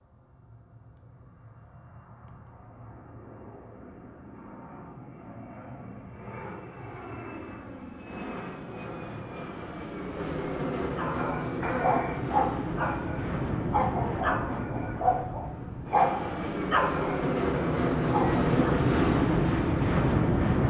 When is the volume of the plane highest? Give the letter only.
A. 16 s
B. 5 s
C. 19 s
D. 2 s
C.